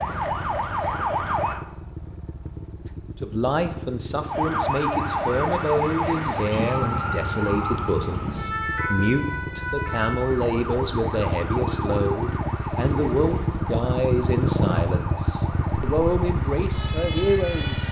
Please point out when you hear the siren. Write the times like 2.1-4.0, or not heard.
0.0-1.6, 4.2-17.8.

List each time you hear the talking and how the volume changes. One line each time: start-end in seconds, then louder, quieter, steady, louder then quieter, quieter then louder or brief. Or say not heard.
3.2-17.8 steady.